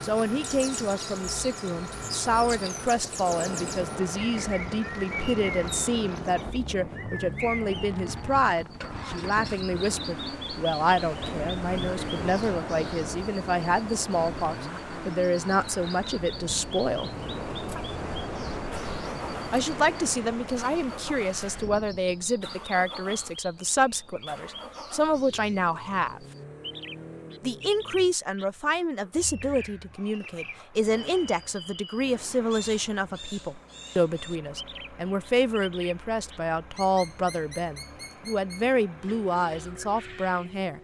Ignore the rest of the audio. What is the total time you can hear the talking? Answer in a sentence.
You can hear the talking for 37 seconds altogether.